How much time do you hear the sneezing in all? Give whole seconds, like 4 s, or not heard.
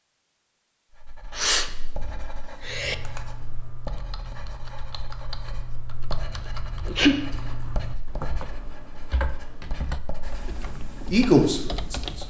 2 s.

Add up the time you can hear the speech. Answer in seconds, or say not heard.
2 s.